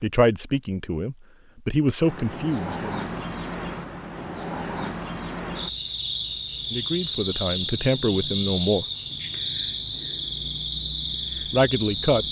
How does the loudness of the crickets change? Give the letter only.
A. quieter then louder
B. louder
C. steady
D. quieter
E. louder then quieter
C.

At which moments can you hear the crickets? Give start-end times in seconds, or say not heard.
2.0-12.2.